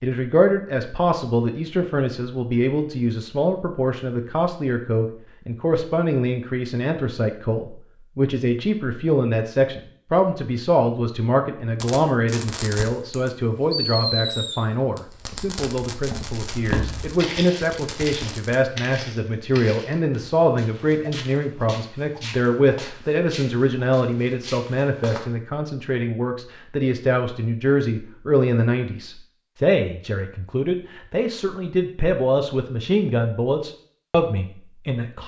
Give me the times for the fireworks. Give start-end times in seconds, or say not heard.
11.8-18.6.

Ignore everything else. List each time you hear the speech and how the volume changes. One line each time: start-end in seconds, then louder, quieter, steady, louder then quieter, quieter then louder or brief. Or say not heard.
0.0-35.2 steady.